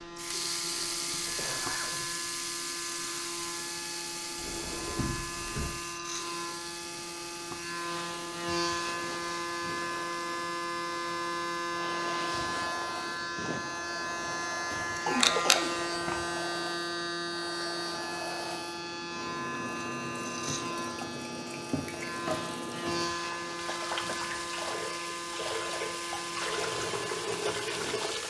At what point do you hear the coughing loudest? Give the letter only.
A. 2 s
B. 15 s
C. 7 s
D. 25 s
B.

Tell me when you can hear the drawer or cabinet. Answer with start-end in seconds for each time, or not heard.
4.3-5.7.